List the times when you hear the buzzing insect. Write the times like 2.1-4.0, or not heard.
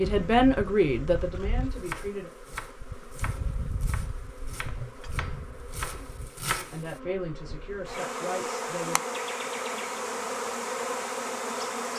0.0-11.9.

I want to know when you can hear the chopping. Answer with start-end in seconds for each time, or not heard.
1.7-7.0.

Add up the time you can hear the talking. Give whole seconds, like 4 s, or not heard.
5 s.